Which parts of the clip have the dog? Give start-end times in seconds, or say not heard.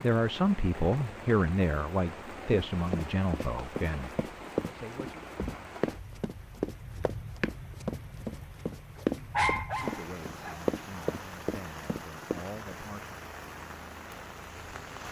9.3-10.7.